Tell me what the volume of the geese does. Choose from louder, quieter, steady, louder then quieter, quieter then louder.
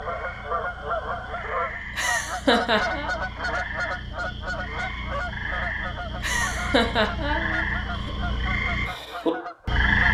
quieter.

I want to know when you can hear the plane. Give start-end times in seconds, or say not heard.
not heard.